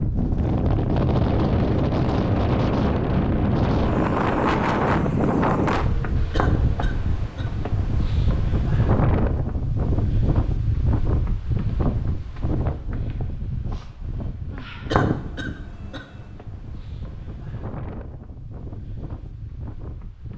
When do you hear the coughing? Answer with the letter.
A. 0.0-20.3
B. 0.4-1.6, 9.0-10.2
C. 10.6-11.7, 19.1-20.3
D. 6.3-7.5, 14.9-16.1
D.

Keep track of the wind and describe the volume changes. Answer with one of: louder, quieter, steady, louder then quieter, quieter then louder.
quieter.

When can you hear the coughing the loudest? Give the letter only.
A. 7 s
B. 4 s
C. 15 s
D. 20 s
C.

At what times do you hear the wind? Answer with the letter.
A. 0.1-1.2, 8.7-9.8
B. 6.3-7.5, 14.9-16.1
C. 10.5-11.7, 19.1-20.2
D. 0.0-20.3
D.